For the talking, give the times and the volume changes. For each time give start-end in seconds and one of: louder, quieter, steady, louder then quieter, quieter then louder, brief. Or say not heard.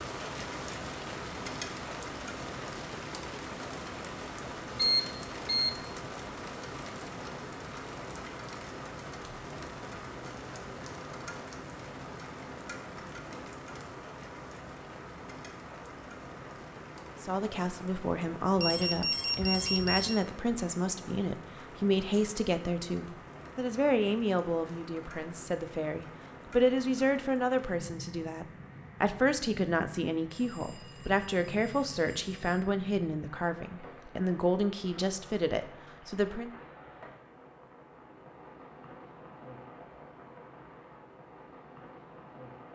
17.2-36.5 steady.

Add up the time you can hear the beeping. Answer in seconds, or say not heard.
5 s.